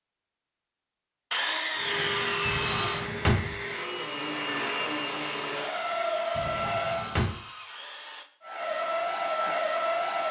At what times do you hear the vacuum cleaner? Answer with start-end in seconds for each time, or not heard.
1.7-7.2, 8.4-10.2.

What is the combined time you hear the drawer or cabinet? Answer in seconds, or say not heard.
2 s.